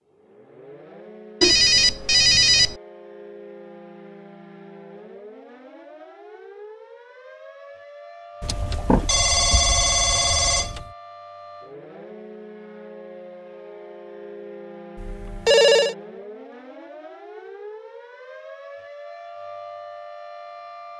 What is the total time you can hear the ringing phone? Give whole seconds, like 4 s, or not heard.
5 s.